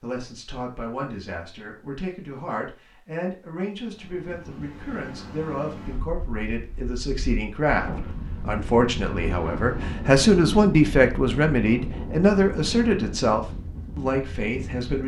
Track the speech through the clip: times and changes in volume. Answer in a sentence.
The speech can be heard from 0.0 to 15.0 s, getting louder.